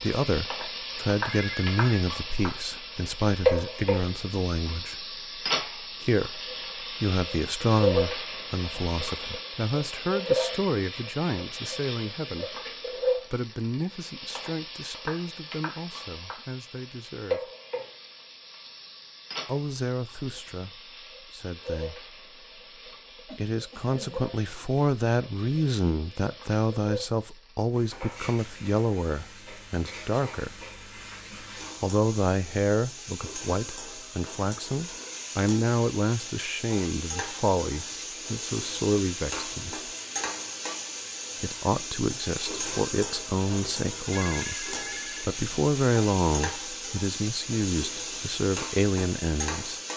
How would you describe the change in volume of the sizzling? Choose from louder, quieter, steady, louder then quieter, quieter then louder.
quieter then louder.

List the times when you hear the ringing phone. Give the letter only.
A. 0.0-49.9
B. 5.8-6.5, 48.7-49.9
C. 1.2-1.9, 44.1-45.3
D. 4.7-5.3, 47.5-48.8
C.